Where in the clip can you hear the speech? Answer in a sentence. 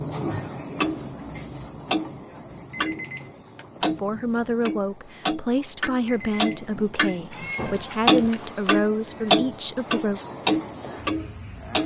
The speech can be heard from 3.8 to 10.2 s.